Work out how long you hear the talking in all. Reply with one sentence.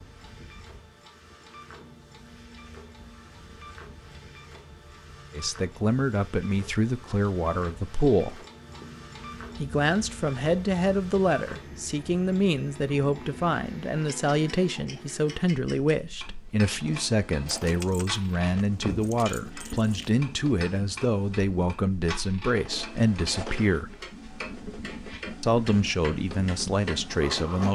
The talking can be heard for 20 seconds in total.